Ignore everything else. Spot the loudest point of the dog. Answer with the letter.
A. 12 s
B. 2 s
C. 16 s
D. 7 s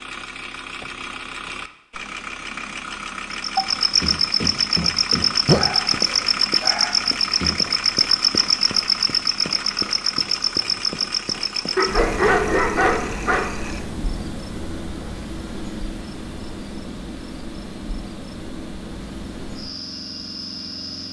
A.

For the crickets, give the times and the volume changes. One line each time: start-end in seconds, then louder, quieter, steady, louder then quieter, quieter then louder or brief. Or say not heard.
3.3-21.0 quieter.